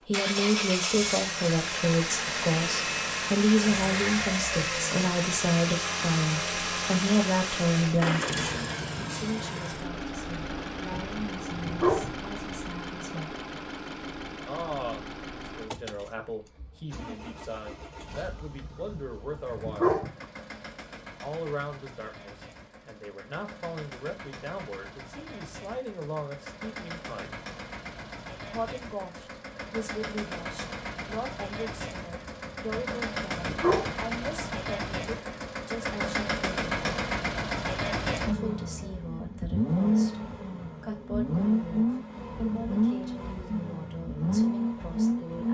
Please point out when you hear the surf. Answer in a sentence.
You can't hear the surf here.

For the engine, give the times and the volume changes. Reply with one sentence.
The engine can be heard from 0.1 to 45.4 s, getting quieter then louder.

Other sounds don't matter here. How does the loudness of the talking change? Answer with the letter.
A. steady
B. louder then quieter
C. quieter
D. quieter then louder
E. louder
C.